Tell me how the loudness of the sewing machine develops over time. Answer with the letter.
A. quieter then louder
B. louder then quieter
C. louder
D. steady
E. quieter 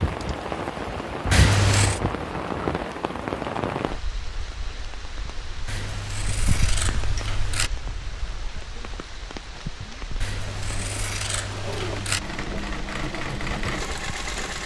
C.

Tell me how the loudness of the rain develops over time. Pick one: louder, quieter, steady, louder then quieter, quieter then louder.
quieter.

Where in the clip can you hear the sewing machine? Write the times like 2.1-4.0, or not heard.
10.4-14.6.